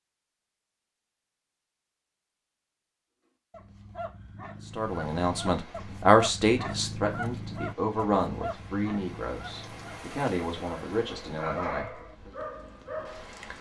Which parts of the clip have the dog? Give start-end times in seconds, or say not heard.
3.5-13.5.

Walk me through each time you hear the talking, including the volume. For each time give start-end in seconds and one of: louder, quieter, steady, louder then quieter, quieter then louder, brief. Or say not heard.
4.8-12.3 quieter.